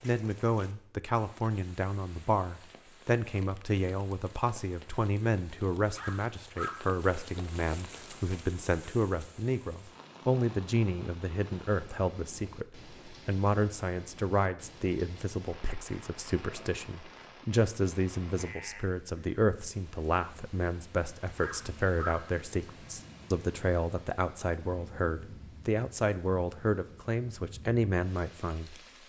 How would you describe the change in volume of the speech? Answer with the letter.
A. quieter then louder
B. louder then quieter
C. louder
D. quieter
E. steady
E.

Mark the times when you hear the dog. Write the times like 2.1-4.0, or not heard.
6.0-6.8, 21.4-22.1.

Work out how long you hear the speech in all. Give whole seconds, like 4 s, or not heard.
29 s.